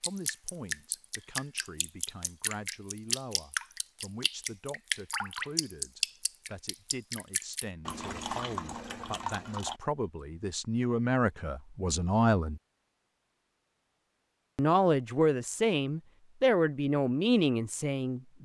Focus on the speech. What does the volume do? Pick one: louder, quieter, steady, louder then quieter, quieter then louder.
louder.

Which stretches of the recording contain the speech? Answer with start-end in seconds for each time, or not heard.
0.0-12.6, 14.6-18.2.